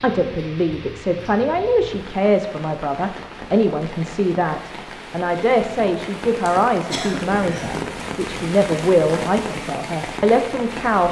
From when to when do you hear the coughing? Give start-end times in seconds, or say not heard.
6.5-7.8.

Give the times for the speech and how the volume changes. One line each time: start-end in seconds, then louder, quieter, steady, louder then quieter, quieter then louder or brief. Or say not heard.
0.0-11.0 steady.